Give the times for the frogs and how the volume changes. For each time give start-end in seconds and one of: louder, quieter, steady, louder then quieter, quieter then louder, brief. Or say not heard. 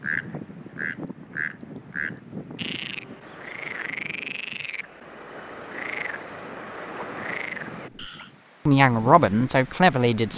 0.0-8.3 steady.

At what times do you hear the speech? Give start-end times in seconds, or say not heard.
8.7-10.3.